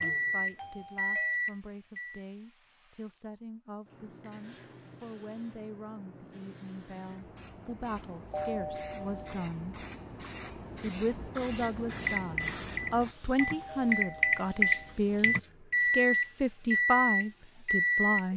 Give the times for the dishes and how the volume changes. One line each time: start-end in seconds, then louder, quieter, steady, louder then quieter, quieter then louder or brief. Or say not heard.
not heard.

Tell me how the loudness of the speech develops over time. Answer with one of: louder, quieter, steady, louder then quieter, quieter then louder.
louder.